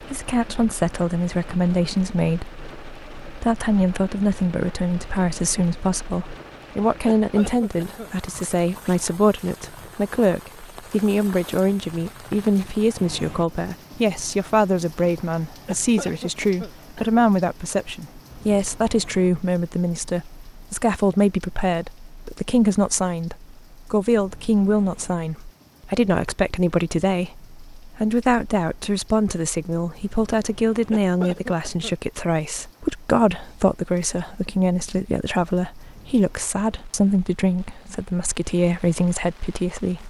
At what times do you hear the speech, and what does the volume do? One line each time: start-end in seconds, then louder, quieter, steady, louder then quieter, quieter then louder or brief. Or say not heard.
0.0-40.0 steady.